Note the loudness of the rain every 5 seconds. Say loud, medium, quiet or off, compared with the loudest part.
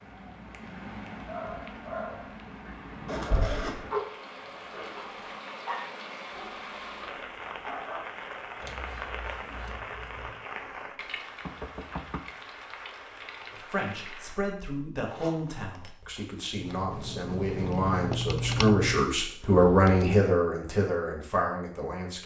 loud, loud, loud, off, off.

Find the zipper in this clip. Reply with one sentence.
You can hear the zipper from 3.0 to 3.8 s, from 8.6 to 10.3 s and from 15.1 to 16.8 s.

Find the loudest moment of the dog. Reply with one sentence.
The loudest moment of the dog is at 4 seconds.